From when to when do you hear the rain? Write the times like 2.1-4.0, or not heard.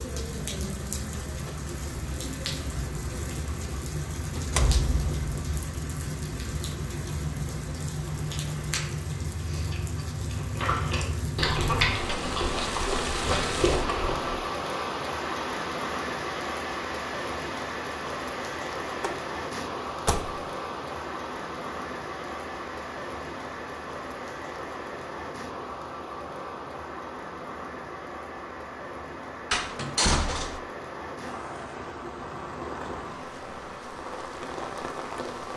0.0-35.5.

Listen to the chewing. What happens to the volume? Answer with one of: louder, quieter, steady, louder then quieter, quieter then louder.
louder.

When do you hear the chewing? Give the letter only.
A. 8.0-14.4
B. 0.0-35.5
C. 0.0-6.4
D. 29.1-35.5
A.